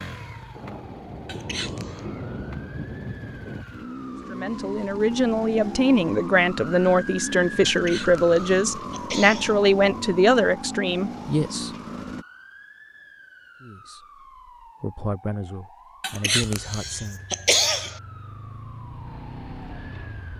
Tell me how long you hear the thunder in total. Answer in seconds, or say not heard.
3 s.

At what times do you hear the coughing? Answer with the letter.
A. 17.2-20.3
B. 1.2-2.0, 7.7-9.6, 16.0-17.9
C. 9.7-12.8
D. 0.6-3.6
B.